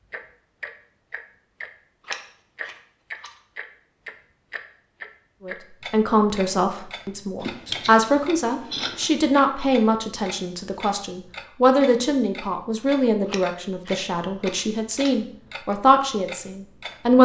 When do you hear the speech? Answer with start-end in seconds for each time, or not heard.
5.5-17.1.